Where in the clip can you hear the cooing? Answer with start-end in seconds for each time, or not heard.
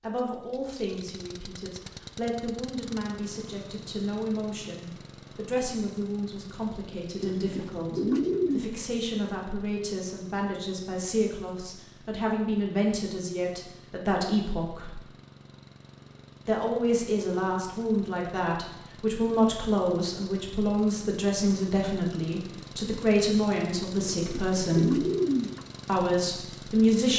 7.2-8.7, 23.9-25.6.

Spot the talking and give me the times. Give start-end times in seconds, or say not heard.
0.0-15.0, 16.4-25.1, 25.9-27.1.